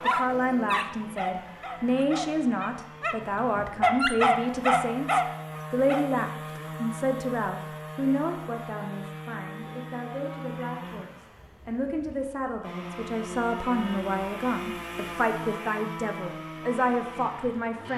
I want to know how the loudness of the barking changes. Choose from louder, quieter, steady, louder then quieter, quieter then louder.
quieter then louder.